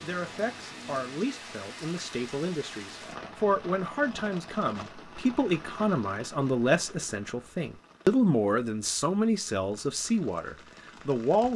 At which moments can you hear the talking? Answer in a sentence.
The talking can be heard from 0.0 to 11.5 s.